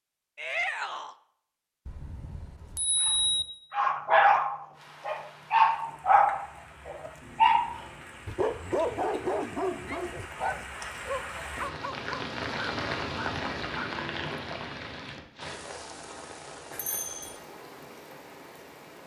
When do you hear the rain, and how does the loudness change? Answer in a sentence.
The rain can be heard from 4.7 to 19.0 s, getting louder then quieter.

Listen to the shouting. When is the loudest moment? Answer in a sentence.
The volume of the shouting peaks at 1 second.